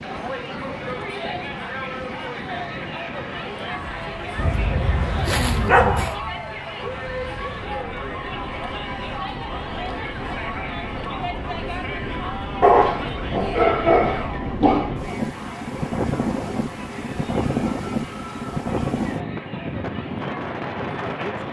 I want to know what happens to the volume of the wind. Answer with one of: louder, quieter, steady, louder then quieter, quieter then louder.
louder.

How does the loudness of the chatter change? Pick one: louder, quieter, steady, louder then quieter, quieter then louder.
quieter.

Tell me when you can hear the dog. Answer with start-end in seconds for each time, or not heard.
4.3-6.2, 12.6-14.9.